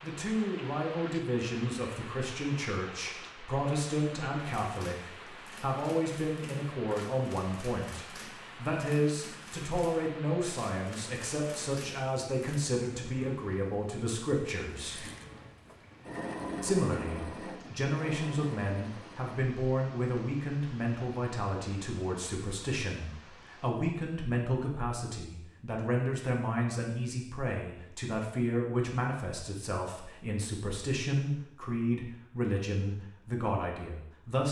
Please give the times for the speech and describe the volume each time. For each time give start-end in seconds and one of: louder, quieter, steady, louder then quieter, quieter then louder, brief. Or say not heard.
0.0-15.0 steady
16.6-34.4 steady.